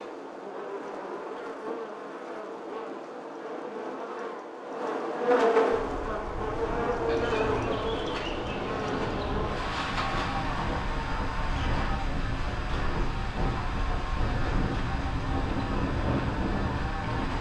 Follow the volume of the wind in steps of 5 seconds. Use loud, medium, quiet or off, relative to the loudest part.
off, medium, loud, loud.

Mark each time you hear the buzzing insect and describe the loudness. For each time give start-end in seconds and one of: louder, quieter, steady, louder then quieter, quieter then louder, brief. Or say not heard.
0.0-17.3 louder then quieter.